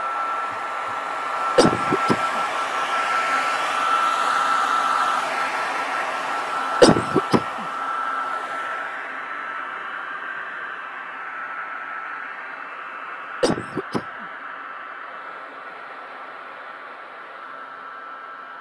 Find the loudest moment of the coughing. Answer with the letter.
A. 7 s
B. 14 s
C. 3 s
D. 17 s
A.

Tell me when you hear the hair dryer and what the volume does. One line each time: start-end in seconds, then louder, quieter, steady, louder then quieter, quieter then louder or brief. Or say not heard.
0.0-18.5 quieter.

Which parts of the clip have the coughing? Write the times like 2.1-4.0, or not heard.
1.6-2.4, 6.8-7.7, 13.4-14.2.